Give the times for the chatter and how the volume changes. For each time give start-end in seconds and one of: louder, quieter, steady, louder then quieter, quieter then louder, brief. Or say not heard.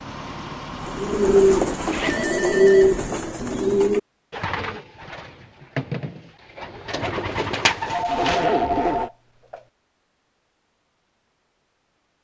not heard.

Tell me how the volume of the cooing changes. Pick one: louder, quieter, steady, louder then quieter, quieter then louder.
quieter then louder.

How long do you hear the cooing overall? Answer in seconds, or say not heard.
8 s.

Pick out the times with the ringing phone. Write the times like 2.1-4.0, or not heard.
2.0-3.9, 7.9-9.6.